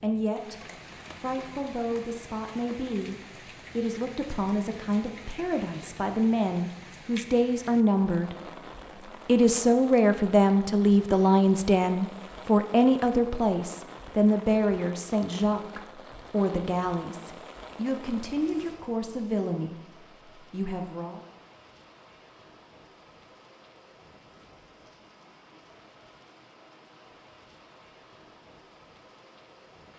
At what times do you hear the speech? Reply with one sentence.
The speech can be heard from 0.0 to 3.1 s, from 3.8 to 8.3 s and from 9.2 to 21.2 s.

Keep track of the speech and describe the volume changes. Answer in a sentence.
The loudness of the speech goes up, then down.